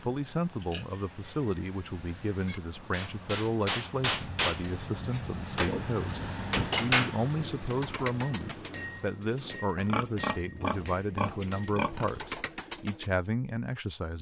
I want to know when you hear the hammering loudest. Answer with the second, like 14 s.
7 s.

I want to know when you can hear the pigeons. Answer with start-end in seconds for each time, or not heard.
7.2-13.2.